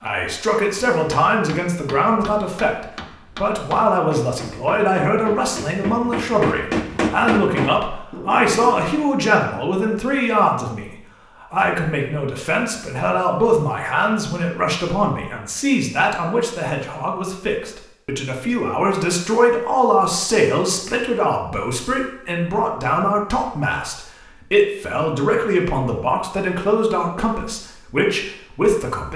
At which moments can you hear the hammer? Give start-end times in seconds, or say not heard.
0.8-8.9.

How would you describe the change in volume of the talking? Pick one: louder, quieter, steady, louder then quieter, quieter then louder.
steady.